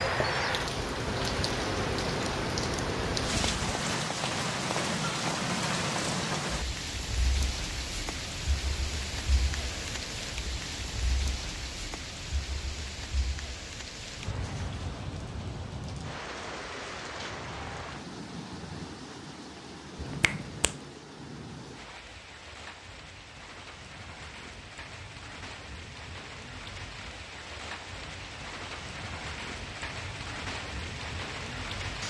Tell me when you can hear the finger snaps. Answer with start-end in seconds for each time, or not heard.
19.9-20.8.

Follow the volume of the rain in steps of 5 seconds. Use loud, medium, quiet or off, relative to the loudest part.
loud, loud, medium, medium, quiet, medium, medium.